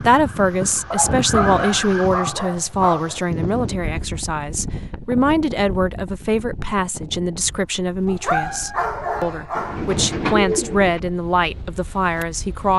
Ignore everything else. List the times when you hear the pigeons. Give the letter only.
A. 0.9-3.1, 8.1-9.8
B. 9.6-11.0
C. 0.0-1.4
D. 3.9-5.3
B.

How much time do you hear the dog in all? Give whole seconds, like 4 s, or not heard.
4 s.